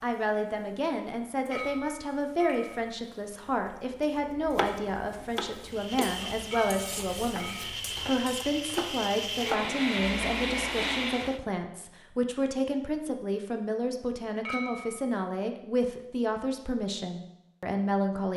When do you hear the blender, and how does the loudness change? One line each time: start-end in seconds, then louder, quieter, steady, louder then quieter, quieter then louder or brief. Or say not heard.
5.6-11.4 louder.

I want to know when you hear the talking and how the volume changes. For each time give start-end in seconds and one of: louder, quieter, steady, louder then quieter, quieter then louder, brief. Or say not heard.
0.0-18.3 steady.